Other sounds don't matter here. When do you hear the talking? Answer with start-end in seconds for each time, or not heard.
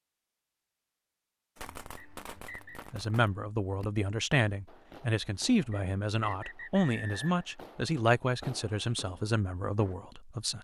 2.9-10.5.